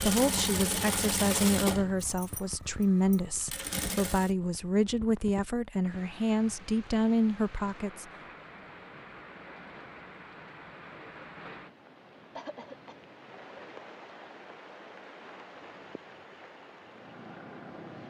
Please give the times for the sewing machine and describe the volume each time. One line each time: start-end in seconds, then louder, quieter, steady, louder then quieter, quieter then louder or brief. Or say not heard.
0.0-4.3 quieter then louder.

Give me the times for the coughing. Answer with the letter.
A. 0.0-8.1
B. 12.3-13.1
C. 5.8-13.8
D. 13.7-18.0
B.